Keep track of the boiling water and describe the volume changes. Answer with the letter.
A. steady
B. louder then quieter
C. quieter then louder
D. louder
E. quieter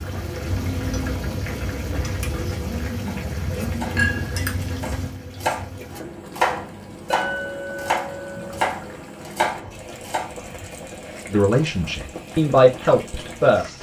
E.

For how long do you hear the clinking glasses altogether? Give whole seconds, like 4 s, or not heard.
2 s.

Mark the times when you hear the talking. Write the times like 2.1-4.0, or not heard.
11.3-13.7.